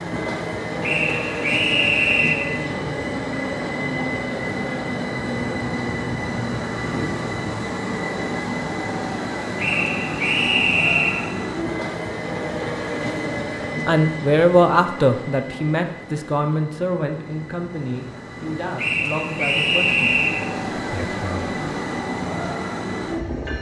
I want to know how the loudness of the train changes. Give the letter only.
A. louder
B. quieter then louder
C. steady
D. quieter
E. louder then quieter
B.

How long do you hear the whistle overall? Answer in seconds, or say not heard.
5 s.